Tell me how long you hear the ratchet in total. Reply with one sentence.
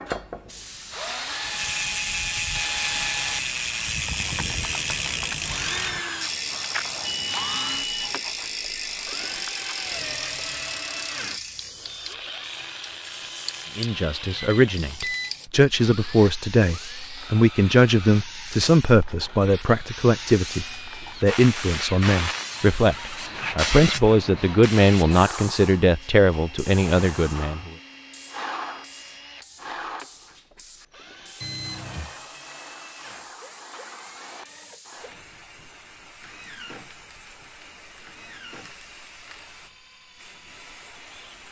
The ratchet can be heard for 10 seconds in total.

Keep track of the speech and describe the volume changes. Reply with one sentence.
The loudness of the speech stays about the same.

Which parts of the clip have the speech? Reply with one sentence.
You can hear the speech from 13.8 to 27.7 s.